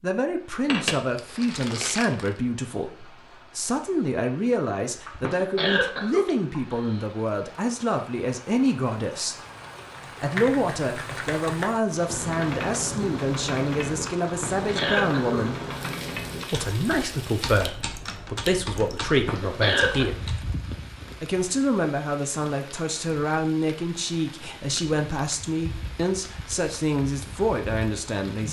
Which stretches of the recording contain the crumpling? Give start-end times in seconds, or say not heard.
0.7-2.3.